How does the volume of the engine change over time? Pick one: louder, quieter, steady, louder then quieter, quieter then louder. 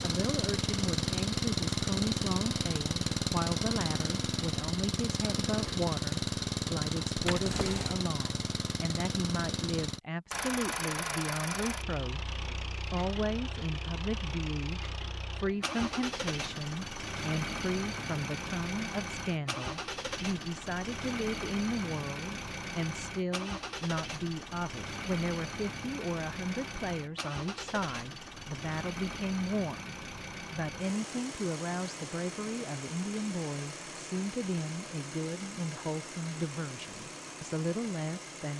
quieter.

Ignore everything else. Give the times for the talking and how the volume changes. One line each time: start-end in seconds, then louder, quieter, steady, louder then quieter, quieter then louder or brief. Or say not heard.
0.0-38.5 steady.